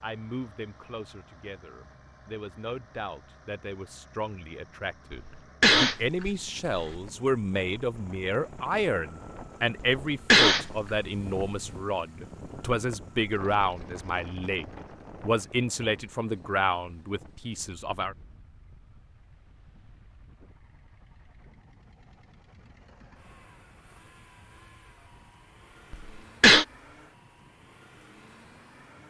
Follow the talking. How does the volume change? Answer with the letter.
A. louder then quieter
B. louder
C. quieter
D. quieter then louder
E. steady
B.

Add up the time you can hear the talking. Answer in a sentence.
You can hear the talking for 18 seconds altogether.